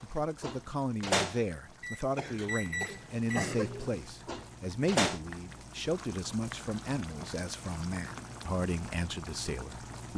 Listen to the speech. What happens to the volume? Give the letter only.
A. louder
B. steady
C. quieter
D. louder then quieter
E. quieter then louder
B.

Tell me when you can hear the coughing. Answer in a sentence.
You can hear the coughing from 2.1 to 3.9 s.